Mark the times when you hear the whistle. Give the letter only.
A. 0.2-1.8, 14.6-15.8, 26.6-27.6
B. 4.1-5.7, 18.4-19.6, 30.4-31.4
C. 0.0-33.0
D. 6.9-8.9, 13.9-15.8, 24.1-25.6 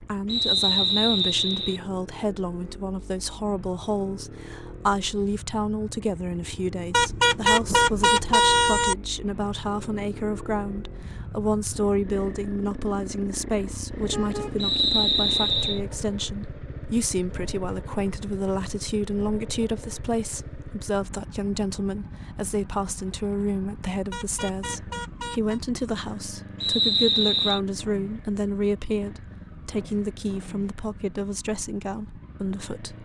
A.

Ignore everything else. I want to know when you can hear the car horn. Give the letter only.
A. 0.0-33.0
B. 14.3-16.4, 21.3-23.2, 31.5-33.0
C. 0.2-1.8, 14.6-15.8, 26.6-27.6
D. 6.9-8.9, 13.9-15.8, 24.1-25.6
D.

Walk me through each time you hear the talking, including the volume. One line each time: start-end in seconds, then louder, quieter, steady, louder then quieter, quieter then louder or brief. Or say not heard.
0.0-33.0 steady.